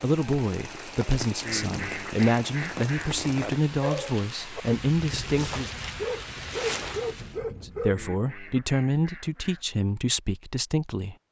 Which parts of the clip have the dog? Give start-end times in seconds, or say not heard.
3.8-8.1.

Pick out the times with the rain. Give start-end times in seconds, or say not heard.
0.0-7.4.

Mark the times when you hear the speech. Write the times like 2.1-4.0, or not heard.
0.0-5.7, 7.6-11.2.